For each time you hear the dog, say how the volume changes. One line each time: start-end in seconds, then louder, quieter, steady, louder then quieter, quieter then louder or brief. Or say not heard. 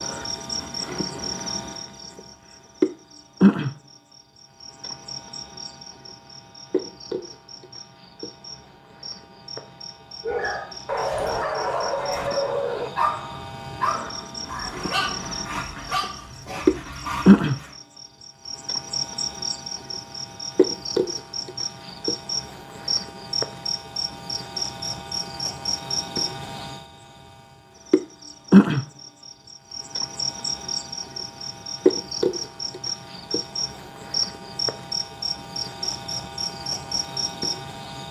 10.2-17.8 quieter.